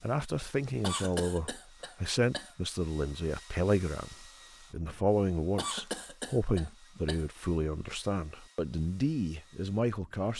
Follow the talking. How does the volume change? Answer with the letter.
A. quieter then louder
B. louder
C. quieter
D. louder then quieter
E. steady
E.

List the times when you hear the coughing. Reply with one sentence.
You can hear the coughing from 0.8 to 2.5 s and from 5.5 to 7.3 s.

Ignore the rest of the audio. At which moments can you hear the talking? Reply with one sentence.
The talking can be heard from 0.0 to 10.3 s.